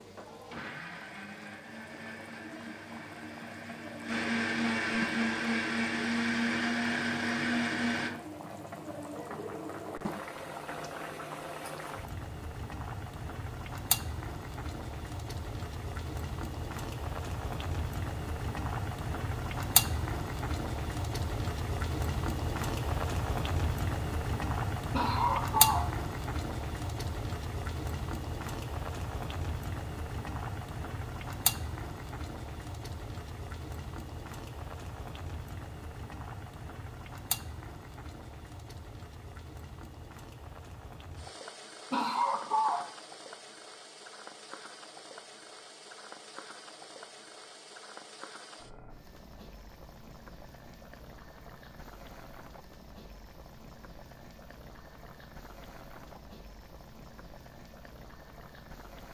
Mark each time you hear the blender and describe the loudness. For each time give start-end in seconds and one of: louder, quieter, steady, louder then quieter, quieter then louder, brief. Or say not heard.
0.0-8.1 louder.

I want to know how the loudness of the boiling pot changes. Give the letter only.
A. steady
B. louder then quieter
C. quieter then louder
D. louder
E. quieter
B.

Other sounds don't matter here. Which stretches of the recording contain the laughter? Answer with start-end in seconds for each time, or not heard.
24.9-25.9, 41.9-42.9.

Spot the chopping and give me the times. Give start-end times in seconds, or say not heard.
not heard.